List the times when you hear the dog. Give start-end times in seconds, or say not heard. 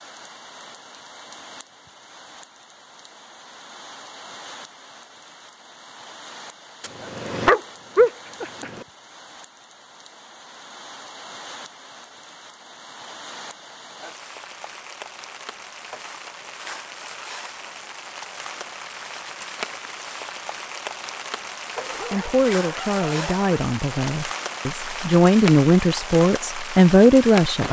6.8-8.8, 21.8-23.5.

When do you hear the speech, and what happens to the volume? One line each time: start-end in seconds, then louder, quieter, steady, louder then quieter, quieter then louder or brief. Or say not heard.
22.1-27.6 louder.